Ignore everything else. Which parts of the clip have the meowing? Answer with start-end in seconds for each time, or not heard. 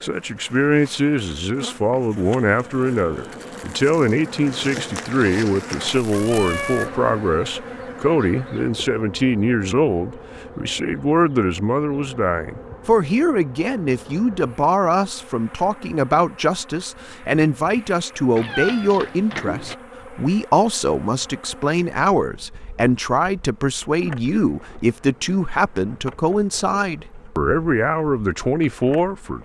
6.1-7.0, 18.4-19.8.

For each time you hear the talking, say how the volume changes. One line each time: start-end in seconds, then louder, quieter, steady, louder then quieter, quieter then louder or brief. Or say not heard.
0.0-29.4 steady.